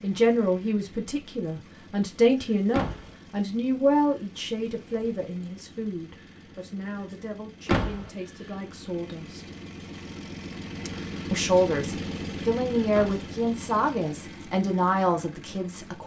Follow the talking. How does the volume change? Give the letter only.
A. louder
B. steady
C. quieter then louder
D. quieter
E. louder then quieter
C.